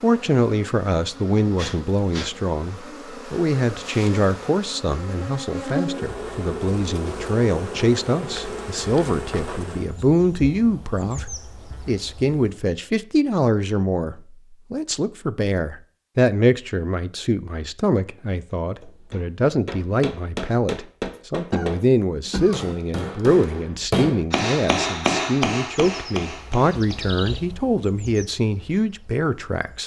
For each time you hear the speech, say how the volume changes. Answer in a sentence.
You can hear the speech from 0.0 to 29.8 s, at a steady volume.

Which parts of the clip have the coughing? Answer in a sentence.
You can hear the coughing from 21.1 to 22.7 s.